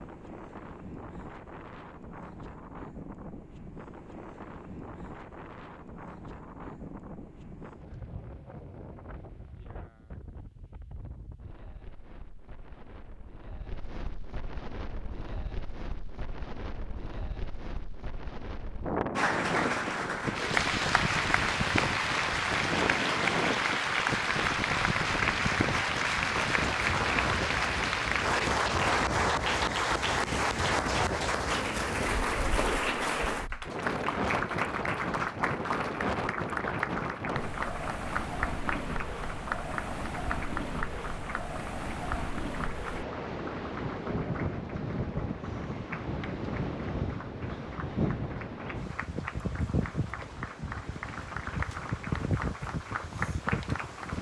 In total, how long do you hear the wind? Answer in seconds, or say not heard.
54 s.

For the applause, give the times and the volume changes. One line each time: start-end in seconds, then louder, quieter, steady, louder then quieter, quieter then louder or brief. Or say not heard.
19.1-54.1 quieter.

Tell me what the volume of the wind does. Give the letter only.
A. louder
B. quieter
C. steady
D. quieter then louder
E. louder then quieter
A.